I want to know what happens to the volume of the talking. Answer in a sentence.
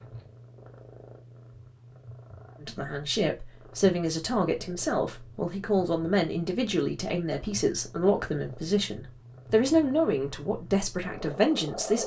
The volume of the talking stays about the same.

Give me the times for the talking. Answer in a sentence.
You can hear the talking from 2.6 to 12.0 s.